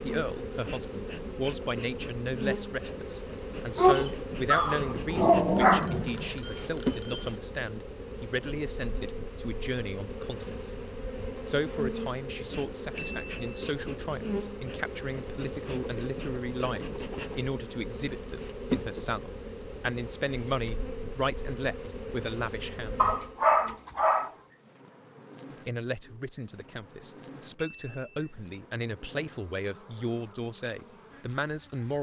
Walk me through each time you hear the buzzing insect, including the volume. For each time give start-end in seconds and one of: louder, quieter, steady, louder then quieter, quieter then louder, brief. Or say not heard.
0.0-31.9 quieter.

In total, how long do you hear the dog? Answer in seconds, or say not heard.
4 s.